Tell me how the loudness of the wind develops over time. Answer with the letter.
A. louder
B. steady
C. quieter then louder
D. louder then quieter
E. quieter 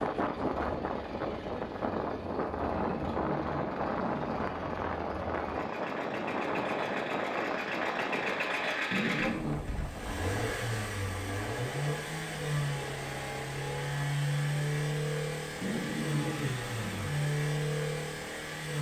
E.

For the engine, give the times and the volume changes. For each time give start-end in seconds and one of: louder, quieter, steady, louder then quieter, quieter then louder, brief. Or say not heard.
0.0-18.7 louder.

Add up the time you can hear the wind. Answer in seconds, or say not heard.
14 s.